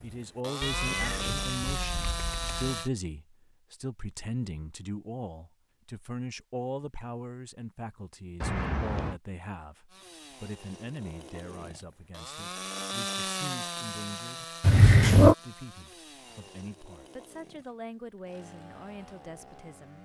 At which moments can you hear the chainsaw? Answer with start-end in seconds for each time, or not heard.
0.0-2.9, 9.8-19.9.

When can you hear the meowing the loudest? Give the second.
15 s.